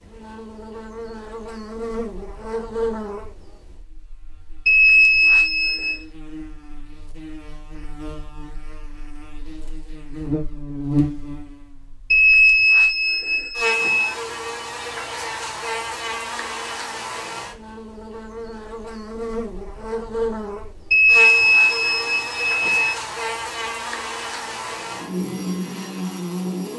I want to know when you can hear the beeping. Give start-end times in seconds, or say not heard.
4.7-6.0, 12.1-14.2, 20.9-22.9.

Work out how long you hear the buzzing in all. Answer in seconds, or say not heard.
27 s.